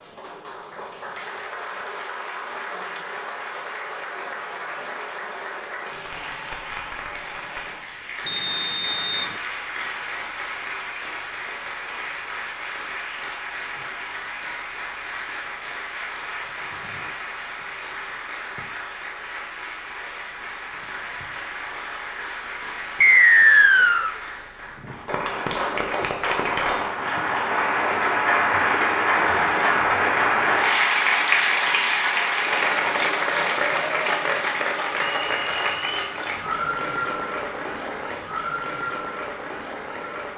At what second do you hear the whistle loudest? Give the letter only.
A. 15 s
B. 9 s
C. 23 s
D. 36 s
C.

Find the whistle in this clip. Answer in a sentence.
The whistle can be heard from 8.2 to 9.3 s, from 23.0 to 24.1 s and from 35.2 to 36.1 s.